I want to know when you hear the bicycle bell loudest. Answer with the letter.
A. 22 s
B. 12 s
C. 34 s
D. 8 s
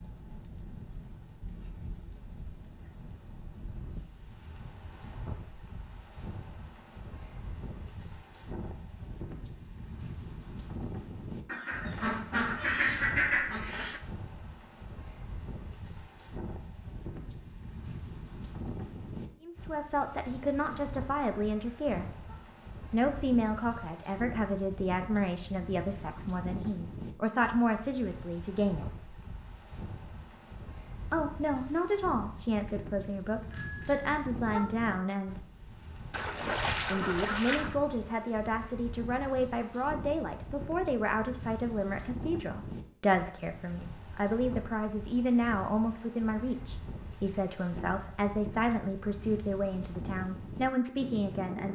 C.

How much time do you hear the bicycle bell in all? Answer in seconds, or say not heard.
2 s.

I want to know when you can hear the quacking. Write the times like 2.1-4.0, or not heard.
11.4-14.0, 36.1-37.8.